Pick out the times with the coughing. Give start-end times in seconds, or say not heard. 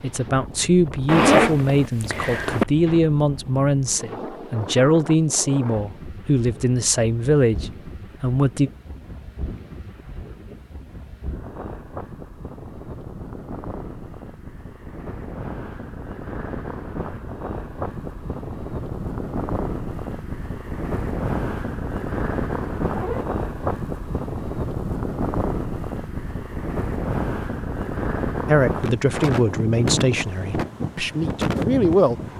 not heard.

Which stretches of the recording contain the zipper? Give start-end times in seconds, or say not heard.
1.1-2.6, 22.9-23.4.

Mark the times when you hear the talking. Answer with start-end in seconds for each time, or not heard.
0.0-8.7, 28.4-32.1.